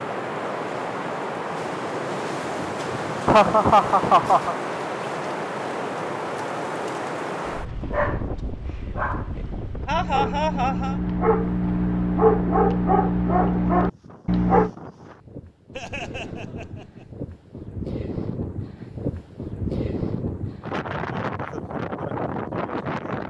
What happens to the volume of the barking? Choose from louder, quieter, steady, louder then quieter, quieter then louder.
louder.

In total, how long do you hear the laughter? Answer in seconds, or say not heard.
4 s.